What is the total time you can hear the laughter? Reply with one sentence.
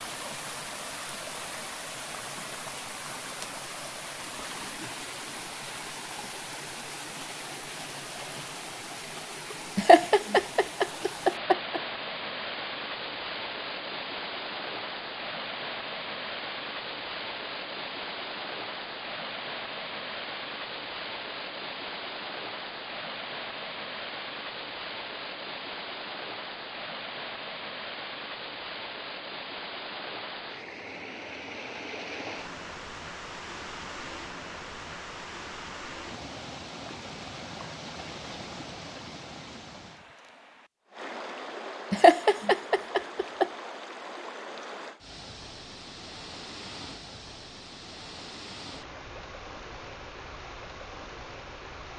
You can hear the laughter for 4 seconds altogether.